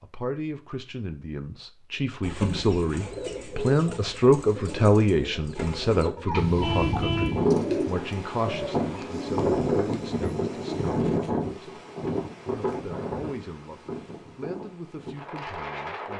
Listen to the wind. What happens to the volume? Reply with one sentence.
The volume of the wind goes down.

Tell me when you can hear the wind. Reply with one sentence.
You can hear the wind from 6.3 to 16.1 s.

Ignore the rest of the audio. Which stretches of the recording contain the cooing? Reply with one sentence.
The cooing can be heard from 2.2 to 10.8 s.